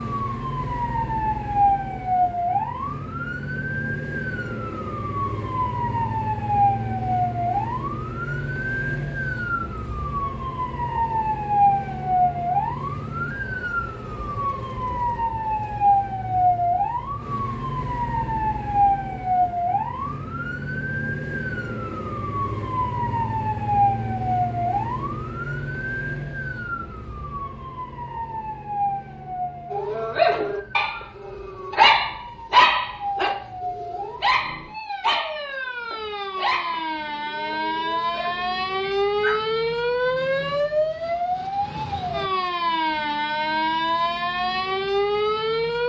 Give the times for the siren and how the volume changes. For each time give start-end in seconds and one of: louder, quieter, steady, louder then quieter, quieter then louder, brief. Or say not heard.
0.0-45.8 quieter then louder.